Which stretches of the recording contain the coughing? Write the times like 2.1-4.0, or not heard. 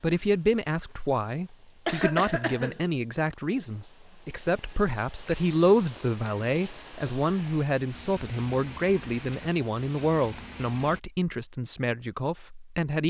1.9-2.8.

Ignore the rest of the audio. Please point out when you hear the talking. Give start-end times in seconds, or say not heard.
0.0-13.0.